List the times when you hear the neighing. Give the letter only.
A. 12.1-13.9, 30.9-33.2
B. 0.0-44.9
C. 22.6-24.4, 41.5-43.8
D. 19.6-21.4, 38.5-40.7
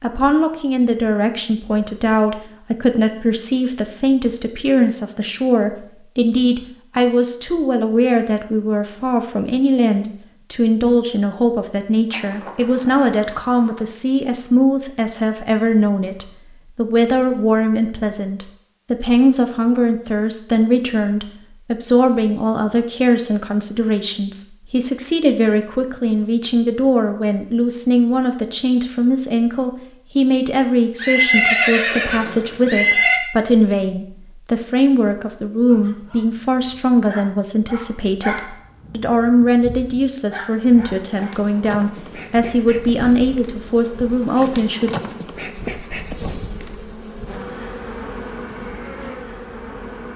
A.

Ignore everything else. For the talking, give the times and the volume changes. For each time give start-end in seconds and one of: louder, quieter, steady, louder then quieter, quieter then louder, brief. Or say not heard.
0.0-44.9 steady.